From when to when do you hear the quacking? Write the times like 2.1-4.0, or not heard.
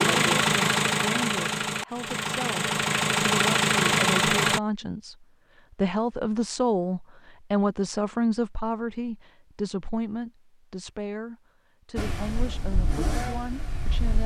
not heard.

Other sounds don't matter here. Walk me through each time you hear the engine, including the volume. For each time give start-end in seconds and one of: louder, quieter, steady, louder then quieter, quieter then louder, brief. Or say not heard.
0.0-4.6 quieter then louder
11.9-14.2 brief.